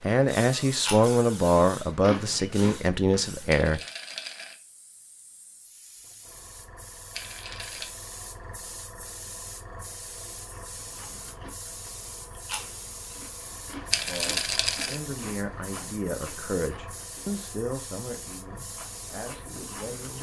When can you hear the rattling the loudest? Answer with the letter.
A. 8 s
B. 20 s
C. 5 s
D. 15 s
D.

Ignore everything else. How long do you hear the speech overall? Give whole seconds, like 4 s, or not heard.
10 s.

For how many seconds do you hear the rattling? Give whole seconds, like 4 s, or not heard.
3 s.